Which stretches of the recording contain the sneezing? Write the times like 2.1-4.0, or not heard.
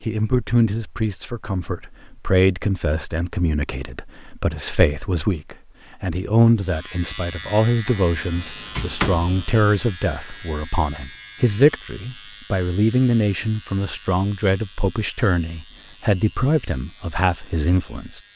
not heard.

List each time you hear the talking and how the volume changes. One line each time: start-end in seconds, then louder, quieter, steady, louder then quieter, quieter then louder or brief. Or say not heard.
0.0-18.2 steady.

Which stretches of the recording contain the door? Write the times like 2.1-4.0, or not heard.
7.8-9.4.